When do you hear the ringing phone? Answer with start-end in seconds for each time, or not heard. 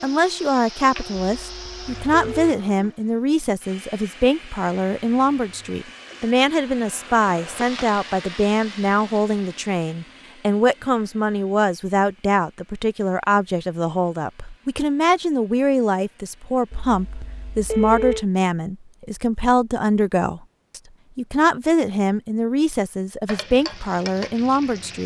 1.3-2.5, 16.7-18.2.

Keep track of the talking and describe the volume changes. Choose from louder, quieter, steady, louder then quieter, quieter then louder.
steady.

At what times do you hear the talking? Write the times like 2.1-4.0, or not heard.
0.0-25.0.